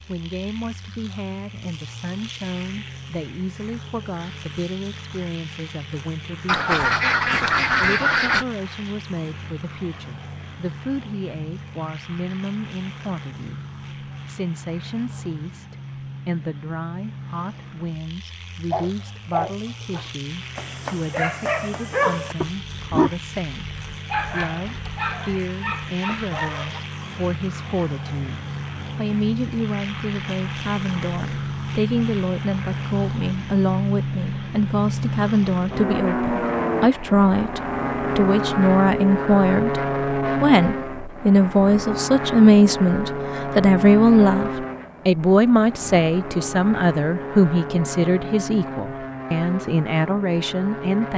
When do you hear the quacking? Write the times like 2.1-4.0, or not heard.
6.5-8.4.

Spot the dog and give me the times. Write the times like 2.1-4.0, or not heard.
18.7-26.8.